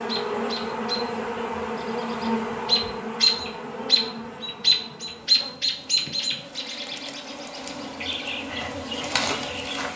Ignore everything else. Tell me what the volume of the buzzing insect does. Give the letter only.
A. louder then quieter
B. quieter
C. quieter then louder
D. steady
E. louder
C.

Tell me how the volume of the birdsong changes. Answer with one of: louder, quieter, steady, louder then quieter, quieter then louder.
louder then quieter.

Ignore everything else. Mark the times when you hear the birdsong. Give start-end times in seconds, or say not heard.
0.0-9.9.